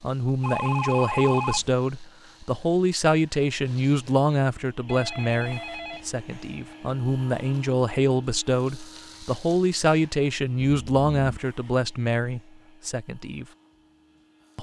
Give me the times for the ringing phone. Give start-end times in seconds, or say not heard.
0.4-1.7, 4.8-6.1, 10.6-11.3.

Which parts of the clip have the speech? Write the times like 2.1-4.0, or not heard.
0.0-13.4.